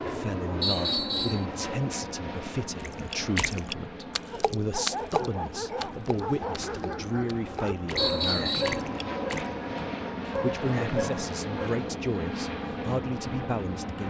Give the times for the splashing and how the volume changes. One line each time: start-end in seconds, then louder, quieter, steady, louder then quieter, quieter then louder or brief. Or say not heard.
2.8-9.4 quieter then louder.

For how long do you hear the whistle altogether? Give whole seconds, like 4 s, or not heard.
2 s.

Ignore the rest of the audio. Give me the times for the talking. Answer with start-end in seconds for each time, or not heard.
0.0-8.7, 10.2-14.0.